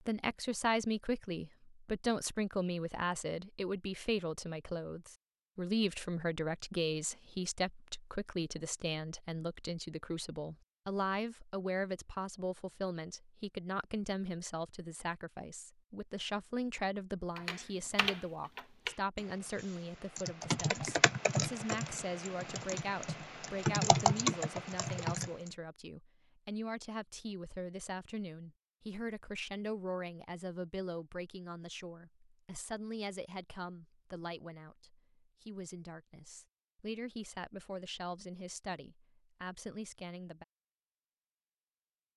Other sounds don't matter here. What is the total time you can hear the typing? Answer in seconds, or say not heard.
8 s.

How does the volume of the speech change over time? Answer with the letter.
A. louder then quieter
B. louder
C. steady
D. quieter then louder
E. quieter
E.